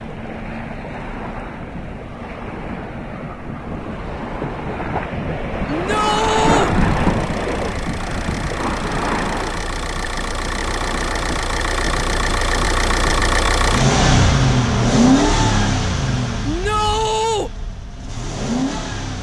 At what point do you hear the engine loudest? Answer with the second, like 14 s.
15 s.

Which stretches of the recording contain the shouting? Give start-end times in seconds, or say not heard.
5.7-6.8, 16.4-17.5.